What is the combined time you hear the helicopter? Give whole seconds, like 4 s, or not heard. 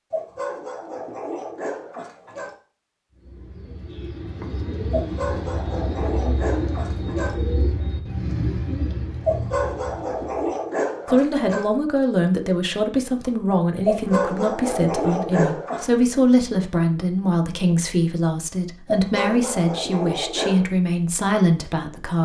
not heard.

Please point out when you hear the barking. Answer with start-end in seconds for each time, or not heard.
0.1-2.5, 4.9-7.3, 9.2-11.7, 13.8-15.9, 18.9-20.6.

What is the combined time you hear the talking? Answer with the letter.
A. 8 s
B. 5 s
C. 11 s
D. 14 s
C.